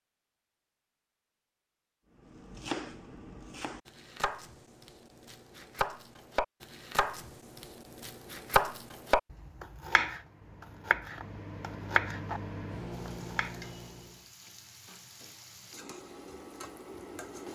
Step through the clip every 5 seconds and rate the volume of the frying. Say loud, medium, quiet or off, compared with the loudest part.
off, off, medium, loud.